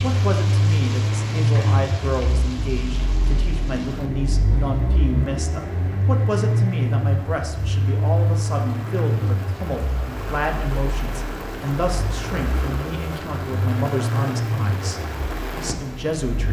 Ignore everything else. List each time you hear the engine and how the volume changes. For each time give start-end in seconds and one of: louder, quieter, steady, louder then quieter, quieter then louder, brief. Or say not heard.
0.0-16.4 quieter then louder.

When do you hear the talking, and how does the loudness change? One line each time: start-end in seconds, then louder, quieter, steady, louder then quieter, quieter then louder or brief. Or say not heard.
0.0-16.4 steady.